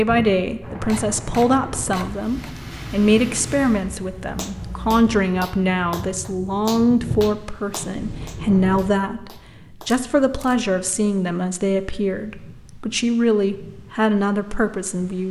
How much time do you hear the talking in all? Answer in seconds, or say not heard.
15 s.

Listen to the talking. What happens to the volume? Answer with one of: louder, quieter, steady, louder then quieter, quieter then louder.
steady.